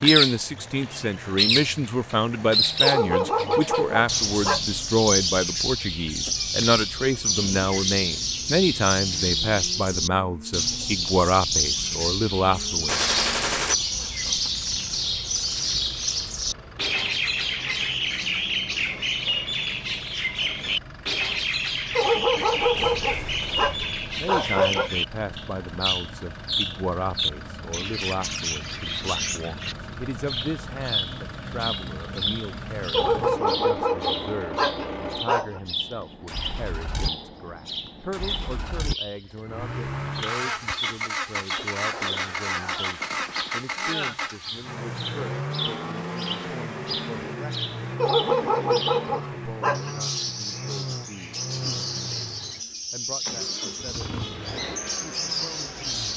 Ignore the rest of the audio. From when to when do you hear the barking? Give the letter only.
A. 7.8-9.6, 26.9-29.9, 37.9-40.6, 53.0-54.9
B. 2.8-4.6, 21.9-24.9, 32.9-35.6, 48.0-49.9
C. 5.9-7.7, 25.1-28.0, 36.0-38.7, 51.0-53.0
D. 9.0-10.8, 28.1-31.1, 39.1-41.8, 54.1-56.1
B.